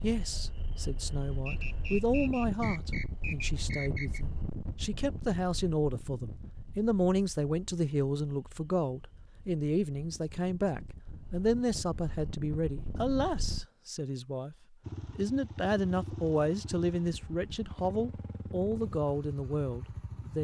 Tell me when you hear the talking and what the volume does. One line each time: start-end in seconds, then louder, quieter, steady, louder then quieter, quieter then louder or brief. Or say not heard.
0.0-20.4 steady.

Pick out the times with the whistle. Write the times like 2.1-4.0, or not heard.
1.4-4.2.